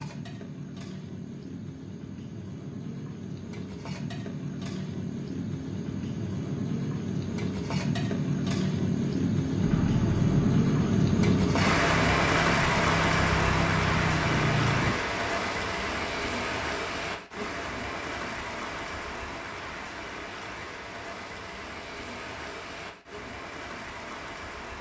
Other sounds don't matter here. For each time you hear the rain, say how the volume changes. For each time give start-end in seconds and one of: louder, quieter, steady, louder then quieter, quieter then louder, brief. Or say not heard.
0.0-24.7 louder then quieter.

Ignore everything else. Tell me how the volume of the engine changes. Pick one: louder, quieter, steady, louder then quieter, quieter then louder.
steady.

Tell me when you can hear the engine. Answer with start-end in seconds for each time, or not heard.
9.6-14.9.